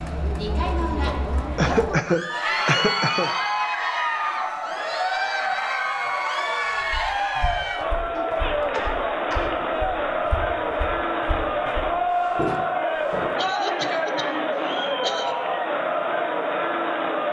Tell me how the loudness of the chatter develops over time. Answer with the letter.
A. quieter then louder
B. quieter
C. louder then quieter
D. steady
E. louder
D.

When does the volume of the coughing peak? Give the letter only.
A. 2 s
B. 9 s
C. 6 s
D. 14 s
A.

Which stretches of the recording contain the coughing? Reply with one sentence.
You can hear the coughing from 1.6 to 3.3 s, from 8.2 to 9.5 s and from 13.3 to 15.3 s.